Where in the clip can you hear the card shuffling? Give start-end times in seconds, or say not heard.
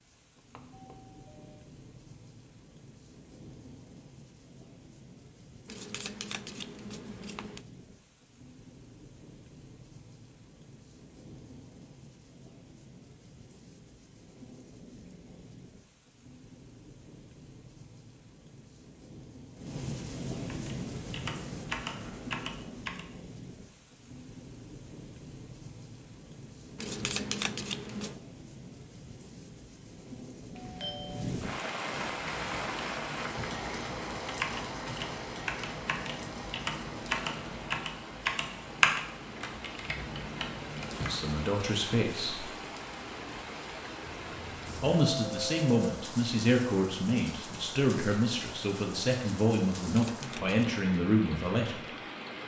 5.7-7.7, 26.8-28.2, 49.8-50.8.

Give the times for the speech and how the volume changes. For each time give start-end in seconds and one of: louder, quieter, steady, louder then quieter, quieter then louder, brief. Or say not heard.
41.0-42.5 brief
44.8-51.8 steady.